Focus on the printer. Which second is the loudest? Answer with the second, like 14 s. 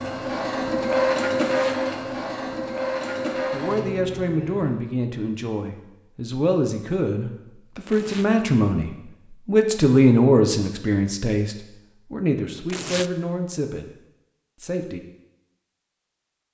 1 s.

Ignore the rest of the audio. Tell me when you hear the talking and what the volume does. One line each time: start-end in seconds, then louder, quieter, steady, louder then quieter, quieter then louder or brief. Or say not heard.
3.5-13.9 louder then quieter
14.6-15.0 brief.